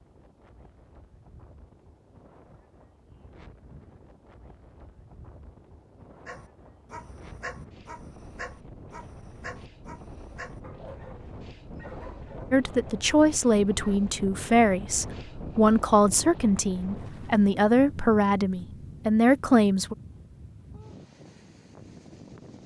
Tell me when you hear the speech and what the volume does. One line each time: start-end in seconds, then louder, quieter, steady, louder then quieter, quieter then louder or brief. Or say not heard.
12.5-19.9 steady.